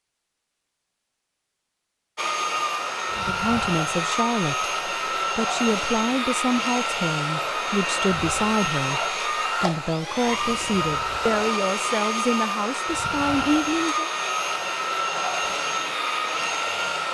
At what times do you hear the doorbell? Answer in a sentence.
The doorbell can't be heard in this clip.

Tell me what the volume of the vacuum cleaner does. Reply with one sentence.
The volume of the vacuum cleaner stays about the same.